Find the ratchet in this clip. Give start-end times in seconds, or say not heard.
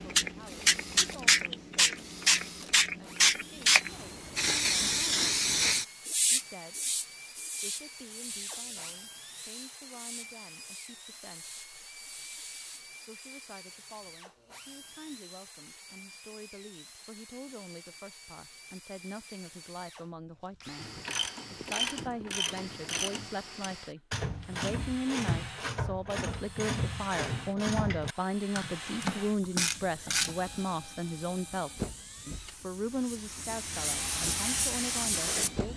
20.8-30.4.